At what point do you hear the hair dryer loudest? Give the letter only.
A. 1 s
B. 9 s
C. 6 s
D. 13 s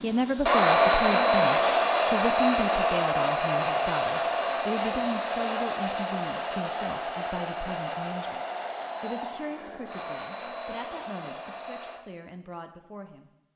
A.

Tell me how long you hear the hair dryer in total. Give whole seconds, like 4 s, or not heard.
12 s.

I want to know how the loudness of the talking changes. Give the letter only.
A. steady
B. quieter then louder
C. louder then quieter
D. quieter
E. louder
D.